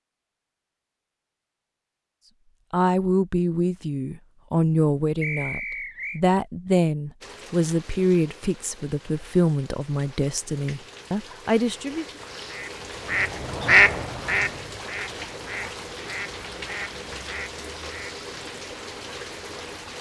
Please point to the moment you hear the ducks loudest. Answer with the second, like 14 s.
14 s.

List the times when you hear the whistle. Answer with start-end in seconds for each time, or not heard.
5.2-6.2.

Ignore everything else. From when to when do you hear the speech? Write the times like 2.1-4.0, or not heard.
2.7-12.1.